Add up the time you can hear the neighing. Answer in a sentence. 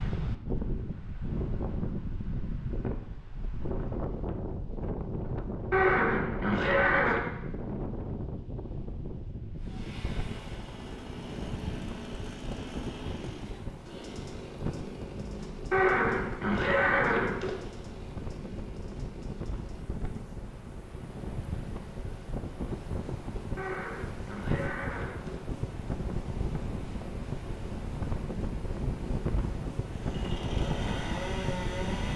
You can hear the neighing for 5 seconds altogether.